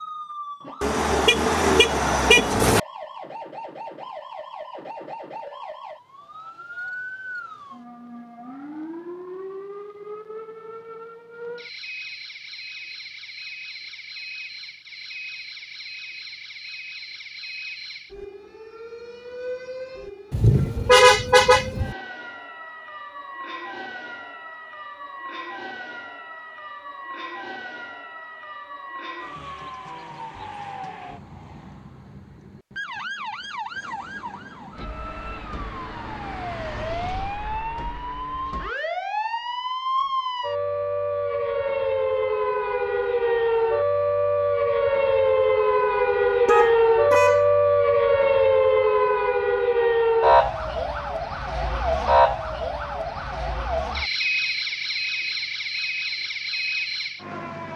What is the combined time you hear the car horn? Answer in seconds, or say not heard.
5 s.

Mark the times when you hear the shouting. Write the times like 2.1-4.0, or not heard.
not heard.